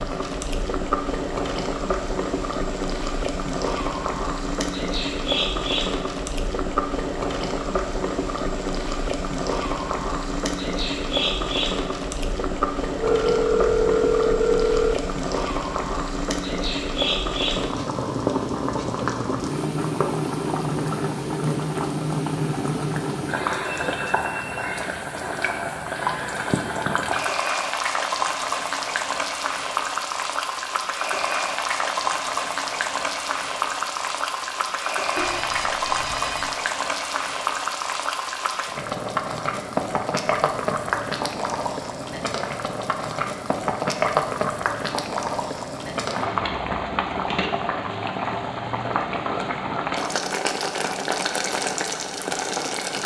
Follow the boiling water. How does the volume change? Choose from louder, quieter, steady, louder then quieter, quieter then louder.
steady.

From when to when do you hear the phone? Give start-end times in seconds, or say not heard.
12.9-14.9, 35.1-36.5.